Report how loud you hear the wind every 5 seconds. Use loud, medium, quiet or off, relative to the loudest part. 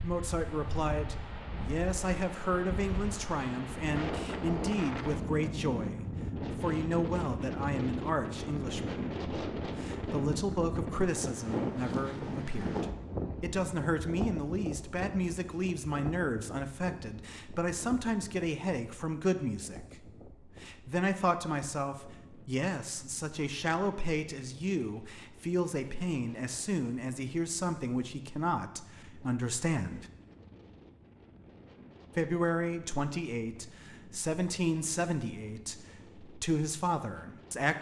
loud, loud, loud, medium, quiet, quiet, quiet, quiet.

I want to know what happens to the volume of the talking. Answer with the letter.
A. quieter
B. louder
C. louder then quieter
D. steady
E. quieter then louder
D.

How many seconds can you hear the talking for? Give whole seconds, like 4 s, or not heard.
35 s.